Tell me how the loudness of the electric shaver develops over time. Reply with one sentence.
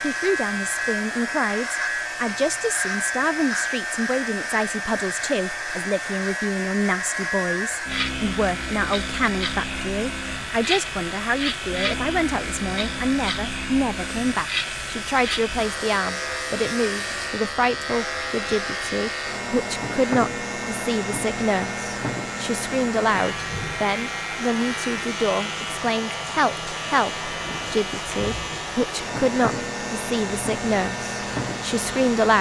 The loudness of the electric shaver stays about the same.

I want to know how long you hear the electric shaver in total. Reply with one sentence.
The electric shaver can be heard for 32 seconds in total.